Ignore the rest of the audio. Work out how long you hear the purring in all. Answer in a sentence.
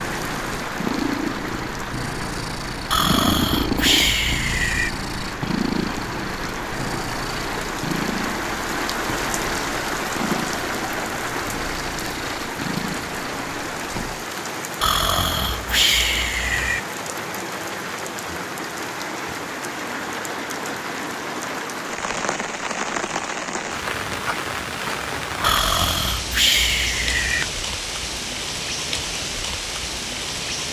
The purring can be heard for 14 seconds in total.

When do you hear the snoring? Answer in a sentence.
The snoring can be heard from 2.9 to 4.9 s, from 14.8 to 16.8 s and from 25.4 to 27.4 s.